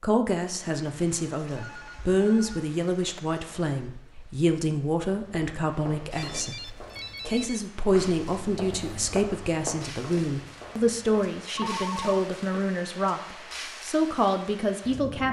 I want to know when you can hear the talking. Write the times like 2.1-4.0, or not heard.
0.0-15.2.